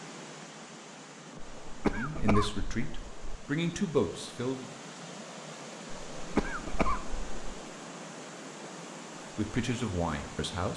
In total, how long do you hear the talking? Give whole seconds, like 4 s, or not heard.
4 s.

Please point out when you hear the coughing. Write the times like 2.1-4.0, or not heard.
1.4-3.4, 6.2-7.3.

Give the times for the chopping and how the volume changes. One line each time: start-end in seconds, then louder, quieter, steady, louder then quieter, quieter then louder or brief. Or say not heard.
not heard.